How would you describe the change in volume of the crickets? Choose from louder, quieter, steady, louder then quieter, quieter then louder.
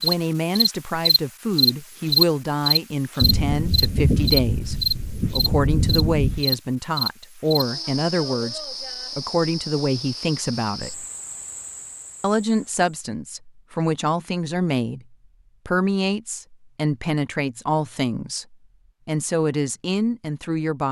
quieter.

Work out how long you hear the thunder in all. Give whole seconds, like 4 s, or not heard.
3 s.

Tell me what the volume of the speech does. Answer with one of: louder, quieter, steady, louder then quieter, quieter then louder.
steady.